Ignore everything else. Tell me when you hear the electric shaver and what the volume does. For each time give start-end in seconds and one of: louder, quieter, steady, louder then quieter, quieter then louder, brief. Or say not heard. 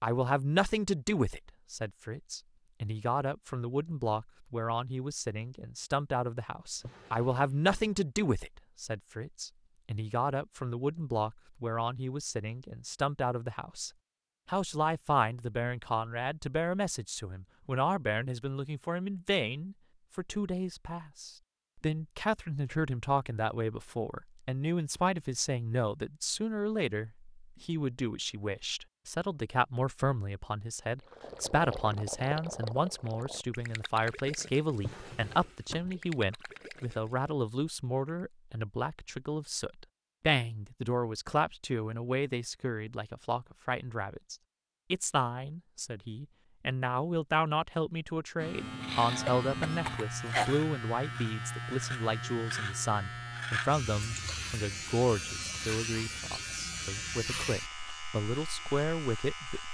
48.4-59.6 steady.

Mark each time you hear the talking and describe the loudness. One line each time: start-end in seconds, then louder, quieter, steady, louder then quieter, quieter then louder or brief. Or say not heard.
0.0-59.6 steady.